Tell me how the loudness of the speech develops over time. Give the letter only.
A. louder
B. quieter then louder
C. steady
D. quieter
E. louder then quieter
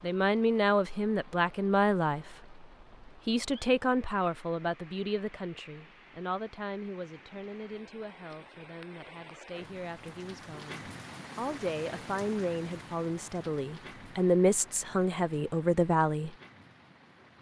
B.